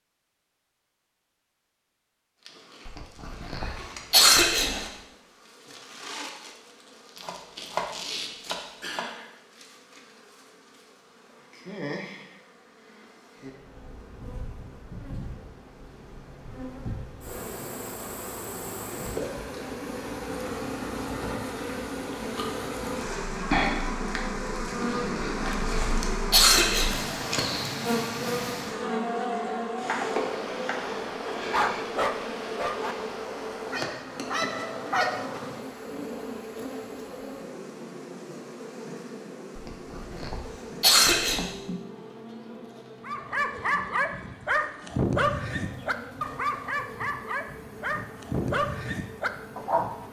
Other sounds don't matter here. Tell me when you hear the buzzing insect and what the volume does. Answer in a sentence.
You can hear the buzzing insect from 2.4 to 50.0 s, getting louder then quieter.